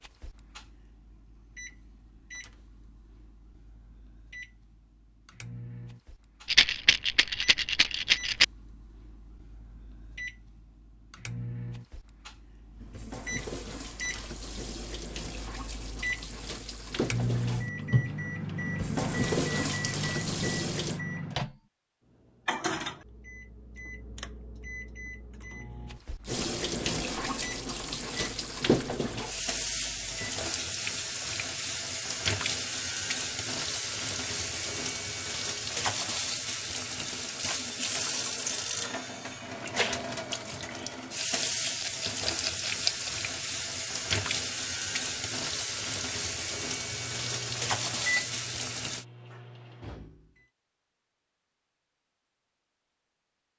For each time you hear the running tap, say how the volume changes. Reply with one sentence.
You can hear the running tap from 12.8 to 21.0 s, getting louder; and from 26.2 to 49.0 s, at a steady volume.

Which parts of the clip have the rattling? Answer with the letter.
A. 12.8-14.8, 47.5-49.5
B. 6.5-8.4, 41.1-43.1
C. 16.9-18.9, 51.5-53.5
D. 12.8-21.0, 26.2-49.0
B.